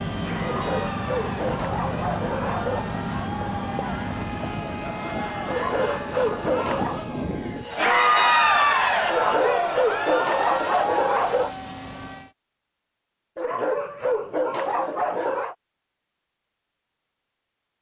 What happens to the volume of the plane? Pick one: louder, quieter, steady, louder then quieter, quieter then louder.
quieter then louder.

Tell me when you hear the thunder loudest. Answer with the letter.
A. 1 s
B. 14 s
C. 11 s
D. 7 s
D.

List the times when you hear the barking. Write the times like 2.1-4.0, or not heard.
0.4-2.9, 5.5-7.0, 9.1-11.6, 13.3-15.6.